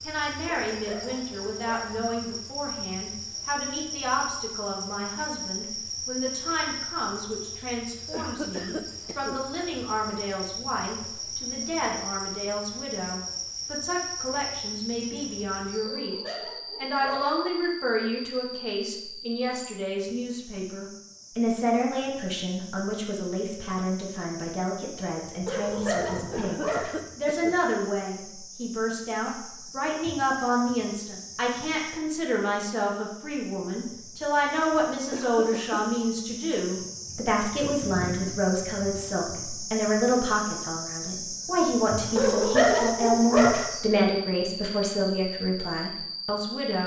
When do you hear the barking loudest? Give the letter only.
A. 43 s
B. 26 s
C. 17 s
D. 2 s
A.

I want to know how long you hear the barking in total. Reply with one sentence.
The barking can be heard for 6 seconds in total.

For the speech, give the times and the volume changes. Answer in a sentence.
The speech can be heard from 0.0 to 46.8 s, getting louder.